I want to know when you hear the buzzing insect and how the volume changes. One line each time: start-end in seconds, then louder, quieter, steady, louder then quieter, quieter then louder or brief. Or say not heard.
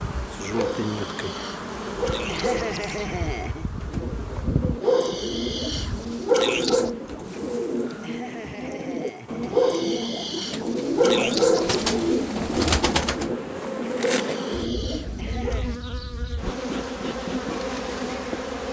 0.0-18.6 quieter then louder.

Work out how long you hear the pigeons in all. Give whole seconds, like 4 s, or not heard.
12 s.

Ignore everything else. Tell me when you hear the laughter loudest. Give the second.
3 s.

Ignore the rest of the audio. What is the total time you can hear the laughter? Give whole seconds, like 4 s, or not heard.
4 s.